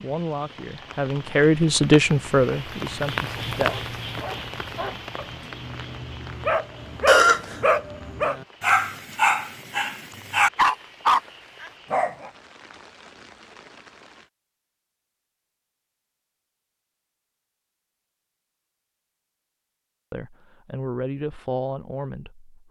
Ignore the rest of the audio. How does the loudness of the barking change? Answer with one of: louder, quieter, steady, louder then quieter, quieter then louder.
louder.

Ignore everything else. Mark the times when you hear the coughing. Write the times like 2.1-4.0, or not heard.
7.0-7.6.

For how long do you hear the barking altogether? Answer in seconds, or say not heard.
9 s.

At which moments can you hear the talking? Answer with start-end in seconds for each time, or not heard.
0.0-3.9, 20.1-22.6.